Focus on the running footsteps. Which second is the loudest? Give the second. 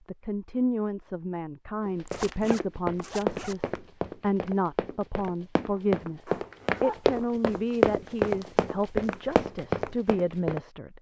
8 s.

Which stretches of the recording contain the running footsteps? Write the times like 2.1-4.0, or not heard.
1.9-10.6.